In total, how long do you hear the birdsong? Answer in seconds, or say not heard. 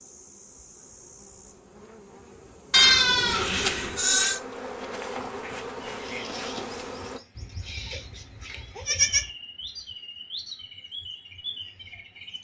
7 s.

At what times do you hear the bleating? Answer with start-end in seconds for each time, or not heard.
2.7-4.4, 7.3-9.2.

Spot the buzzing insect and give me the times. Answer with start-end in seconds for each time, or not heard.
0.0-7.2.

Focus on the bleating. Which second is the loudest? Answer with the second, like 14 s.
3 s.